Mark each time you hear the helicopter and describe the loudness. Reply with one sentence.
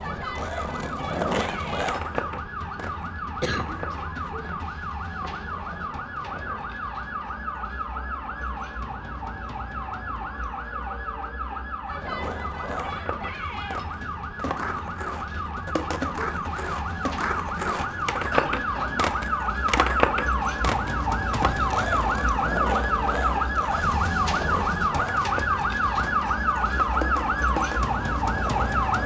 You can't hear the helicopter here.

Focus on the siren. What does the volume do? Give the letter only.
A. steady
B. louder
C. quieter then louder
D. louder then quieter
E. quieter
B.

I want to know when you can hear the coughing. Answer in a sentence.
You can hear the coughing from 3.4 to 4.3 s and from 18.2 to 19.1 s.